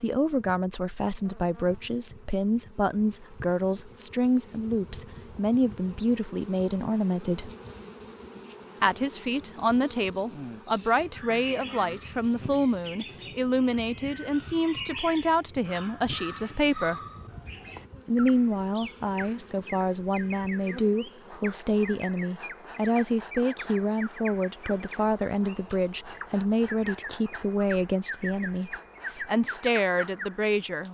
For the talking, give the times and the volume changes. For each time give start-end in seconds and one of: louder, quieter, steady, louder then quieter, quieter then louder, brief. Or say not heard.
0.0-7.5 steady
8.8-17.0 steady
18.1-30.8 steady.